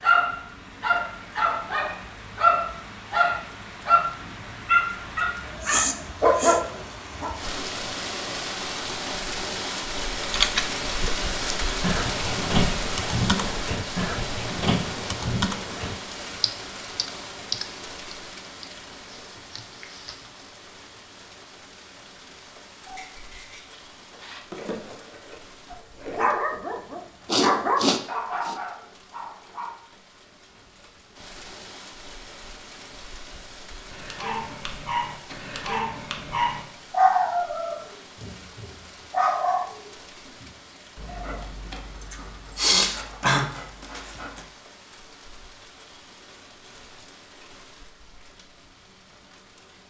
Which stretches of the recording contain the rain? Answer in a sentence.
The rain can be heard from 0.0 to 49.8 s.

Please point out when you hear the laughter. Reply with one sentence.
The laughter can't be heard in this clip.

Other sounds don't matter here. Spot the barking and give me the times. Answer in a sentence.
You can hear the barking from 0.0 to 7.3 s, from 22.9 to 29.8 s and from 33.9 to 44.5 s.